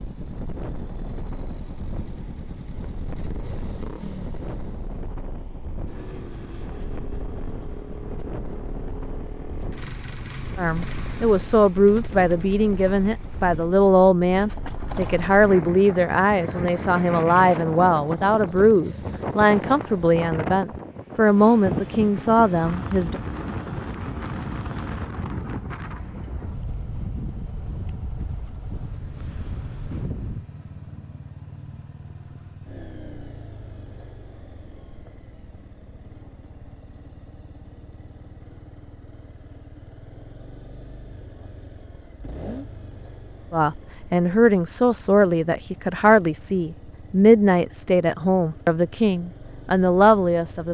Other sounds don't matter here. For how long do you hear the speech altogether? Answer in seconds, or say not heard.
20 s.